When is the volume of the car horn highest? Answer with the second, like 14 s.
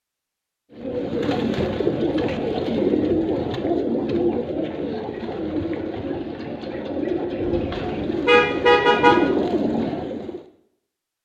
9 s.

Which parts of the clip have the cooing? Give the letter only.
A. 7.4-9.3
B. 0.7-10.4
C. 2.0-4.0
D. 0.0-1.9
B.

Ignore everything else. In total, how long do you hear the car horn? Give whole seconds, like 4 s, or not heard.
2 s.